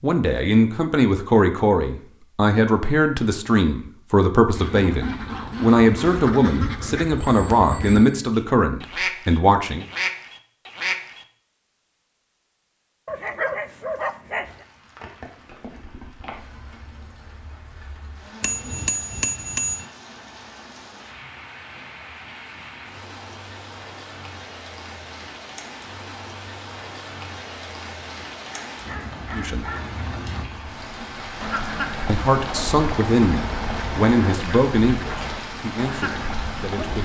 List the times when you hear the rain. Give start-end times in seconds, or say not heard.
14.4-37.0.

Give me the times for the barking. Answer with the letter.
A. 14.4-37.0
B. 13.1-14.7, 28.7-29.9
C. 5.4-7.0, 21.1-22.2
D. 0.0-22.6
B.